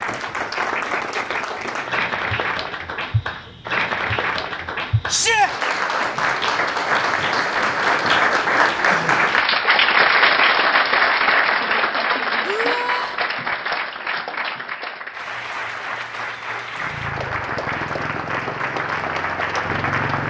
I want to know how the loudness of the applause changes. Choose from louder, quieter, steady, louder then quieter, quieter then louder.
louder then quieter.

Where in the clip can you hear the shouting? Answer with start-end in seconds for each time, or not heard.
5.0-5.5, 12.4-13.2.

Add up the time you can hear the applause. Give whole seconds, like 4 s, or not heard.
20 s.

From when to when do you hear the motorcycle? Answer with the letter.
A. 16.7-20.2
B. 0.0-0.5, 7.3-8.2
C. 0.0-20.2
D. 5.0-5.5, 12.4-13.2
A.